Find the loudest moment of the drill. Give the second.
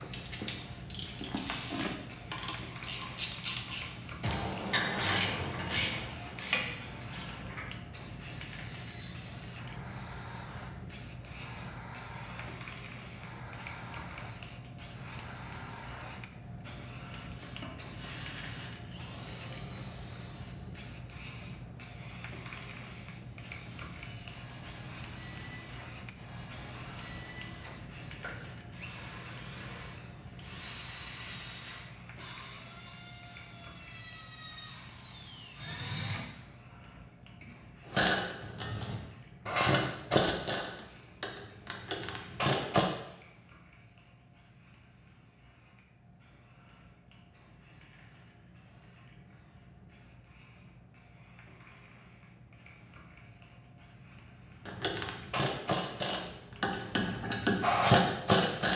36 s.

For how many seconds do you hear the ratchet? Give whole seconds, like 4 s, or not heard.
17 s.